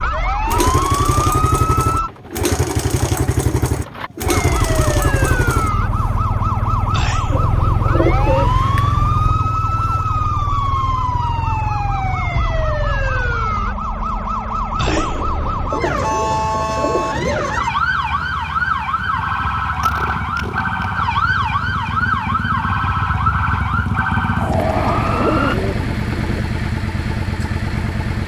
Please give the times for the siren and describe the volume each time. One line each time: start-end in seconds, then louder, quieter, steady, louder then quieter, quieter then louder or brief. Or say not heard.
0.0-2.1 brief
4.2-25.6 steady.